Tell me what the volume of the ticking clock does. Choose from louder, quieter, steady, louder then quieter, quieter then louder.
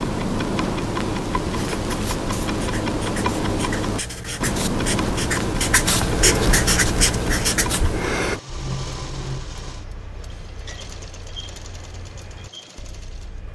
quieter.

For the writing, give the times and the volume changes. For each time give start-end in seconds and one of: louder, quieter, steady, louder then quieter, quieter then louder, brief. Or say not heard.
1.5-8.4 louder.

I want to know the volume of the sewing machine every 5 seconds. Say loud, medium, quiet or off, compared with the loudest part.
off, loud, medium.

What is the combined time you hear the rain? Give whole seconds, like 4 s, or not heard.
not heard.